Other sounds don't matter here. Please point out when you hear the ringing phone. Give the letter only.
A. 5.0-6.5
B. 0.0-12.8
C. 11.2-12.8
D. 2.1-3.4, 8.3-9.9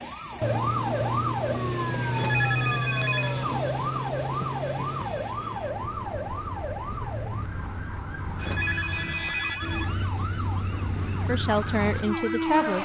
D.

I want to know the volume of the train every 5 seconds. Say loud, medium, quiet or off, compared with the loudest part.
medium, medium, loud.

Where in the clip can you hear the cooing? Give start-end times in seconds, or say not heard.
not heard.